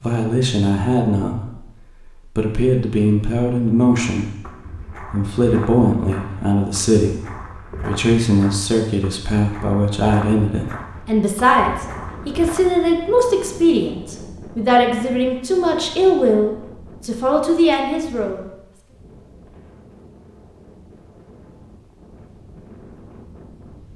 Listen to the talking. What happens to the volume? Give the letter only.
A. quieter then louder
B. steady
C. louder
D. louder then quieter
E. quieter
B.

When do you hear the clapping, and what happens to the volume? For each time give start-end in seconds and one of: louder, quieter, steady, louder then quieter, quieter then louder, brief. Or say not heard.
not heard.